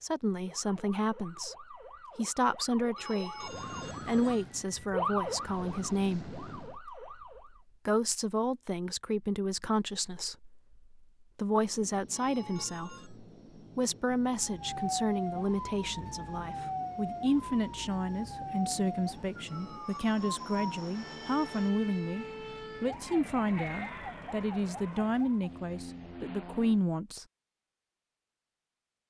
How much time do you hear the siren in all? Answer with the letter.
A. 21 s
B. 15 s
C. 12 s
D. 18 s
D.